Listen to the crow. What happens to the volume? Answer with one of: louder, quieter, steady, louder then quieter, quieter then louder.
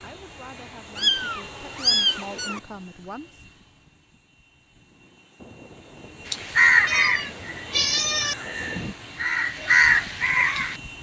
quieter then louder.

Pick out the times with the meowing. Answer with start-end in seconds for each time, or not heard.
0.9-2.6, 6.8-8.3.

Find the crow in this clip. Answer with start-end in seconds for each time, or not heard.
6.2-10.8.